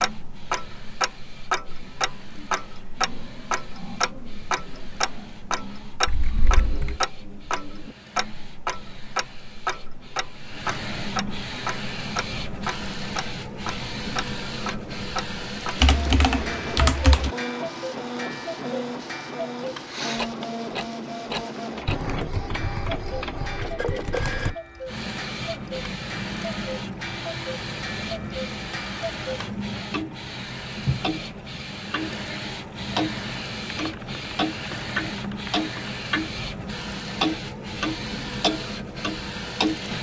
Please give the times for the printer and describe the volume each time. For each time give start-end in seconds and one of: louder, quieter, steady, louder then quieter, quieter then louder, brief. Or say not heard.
0.0-39.9 louder.